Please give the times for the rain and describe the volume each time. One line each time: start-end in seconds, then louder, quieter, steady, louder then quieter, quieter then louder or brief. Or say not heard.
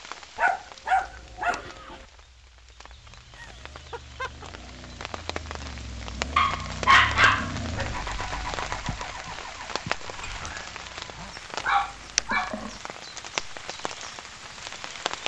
0.0-15.2 louder.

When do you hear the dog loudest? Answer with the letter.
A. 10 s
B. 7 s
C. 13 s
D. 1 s
B.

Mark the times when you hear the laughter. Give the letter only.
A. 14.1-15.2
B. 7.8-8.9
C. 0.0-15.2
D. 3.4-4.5
D.